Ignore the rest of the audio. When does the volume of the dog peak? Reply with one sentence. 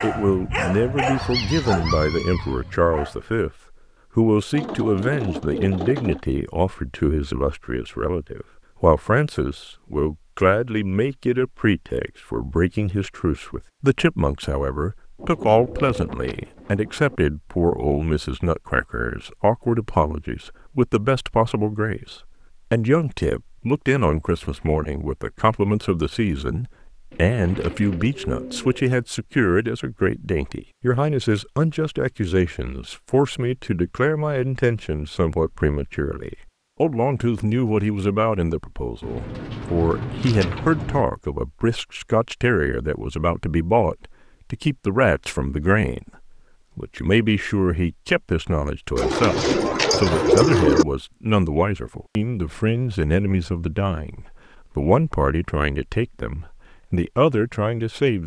The volume of the dog peaks at 1 second.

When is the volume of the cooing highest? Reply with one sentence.
The loudest moment of the cooing is at 50 seconds.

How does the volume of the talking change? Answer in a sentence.
The loudness of the talking stays about the same.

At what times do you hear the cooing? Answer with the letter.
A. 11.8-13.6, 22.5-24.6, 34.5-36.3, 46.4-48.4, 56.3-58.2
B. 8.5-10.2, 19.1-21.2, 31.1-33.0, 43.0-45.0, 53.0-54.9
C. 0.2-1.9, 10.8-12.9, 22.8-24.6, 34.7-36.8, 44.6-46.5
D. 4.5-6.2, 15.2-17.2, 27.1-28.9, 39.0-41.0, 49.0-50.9
D.